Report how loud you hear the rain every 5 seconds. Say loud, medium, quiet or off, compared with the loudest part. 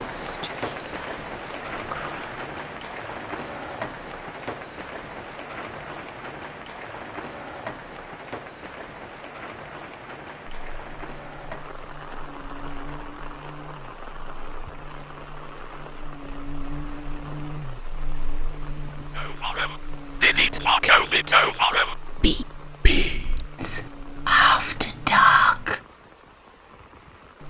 loud, loud, medium, medium, quiet, quiet.